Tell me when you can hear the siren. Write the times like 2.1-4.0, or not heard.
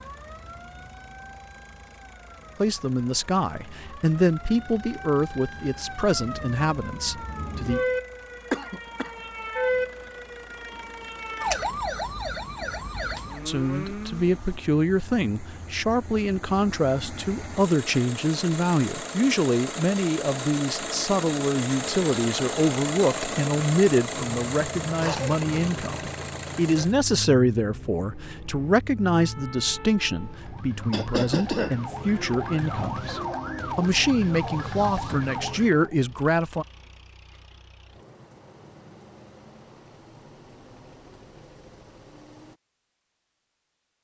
0.0-14.4, 29.1-36.0.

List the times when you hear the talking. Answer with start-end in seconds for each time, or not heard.
2.6-7.8, 13.4-36.6.